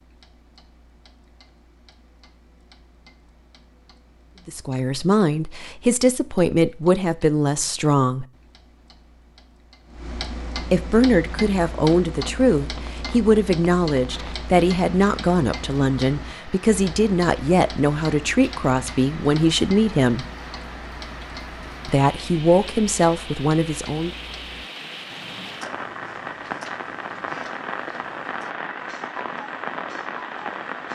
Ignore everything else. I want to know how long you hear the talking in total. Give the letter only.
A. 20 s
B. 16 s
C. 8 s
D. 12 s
B.